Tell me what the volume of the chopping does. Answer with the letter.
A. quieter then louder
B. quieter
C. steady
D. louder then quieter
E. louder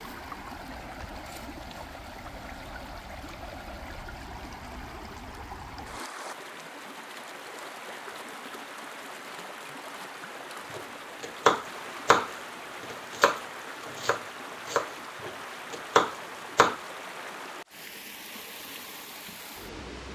A.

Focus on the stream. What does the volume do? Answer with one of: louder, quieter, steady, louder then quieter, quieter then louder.
steady.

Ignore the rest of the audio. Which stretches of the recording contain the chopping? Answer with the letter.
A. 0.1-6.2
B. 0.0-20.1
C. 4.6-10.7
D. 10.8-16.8
D.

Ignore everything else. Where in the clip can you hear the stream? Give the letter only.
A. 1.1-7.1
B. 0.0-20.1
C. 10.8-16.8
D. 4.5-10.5
B.